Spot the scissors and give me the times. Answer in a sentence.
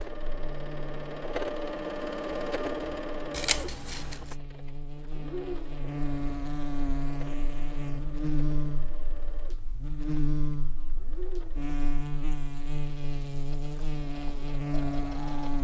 The scissors can be heard from 3.3 to 4.3 s.